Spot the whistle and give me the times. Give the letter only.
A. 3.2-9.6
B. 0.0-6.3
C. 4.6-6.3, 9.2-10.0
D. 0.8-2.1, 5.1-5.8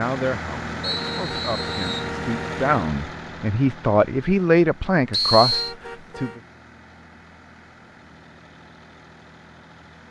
D.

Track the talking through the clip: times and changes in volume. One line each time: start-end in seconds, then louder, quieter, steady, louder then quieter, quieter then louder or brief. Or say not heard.
0.0-6.3 louder.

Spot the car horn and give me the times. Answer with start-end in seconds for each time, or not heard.
0.9-2.7, 5.5-6.4.